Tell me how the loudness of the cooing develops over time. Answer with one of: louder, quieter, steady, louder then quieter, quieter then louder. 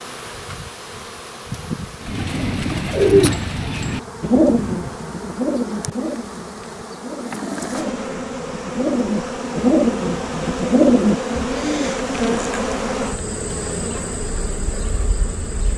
quieter then louder.